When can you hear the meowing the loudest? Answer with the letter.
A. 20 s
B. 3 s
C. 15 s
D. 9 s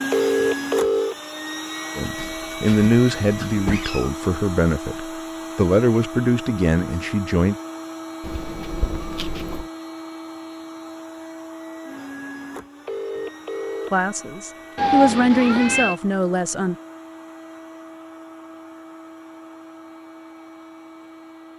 C.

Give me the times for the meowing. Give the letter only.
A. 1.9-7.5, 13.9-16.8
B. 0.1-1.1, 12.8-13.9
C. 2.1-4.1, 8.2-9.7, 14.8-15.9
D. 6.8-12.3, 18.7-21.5
C.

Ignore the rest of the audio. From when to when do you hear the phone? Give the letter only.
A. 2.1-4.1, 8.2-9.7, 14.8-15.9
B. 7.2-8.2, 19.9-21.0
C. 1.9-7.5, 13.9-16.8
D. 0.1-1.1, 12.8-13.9
D.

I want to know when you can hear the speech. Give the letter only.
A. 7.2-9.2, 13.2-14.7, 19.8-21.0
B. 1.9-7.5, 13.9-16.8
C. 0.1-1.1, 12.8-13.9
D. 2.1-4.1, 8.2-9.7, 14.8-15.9
B.